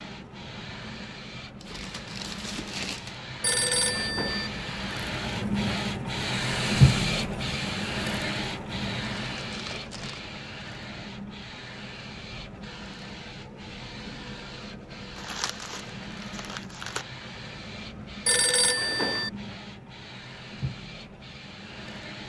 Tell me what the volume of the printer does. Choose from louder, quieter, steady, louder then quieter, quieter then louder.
louder then quieter.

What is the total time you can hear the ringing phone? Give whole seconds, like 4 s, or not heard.
2 s.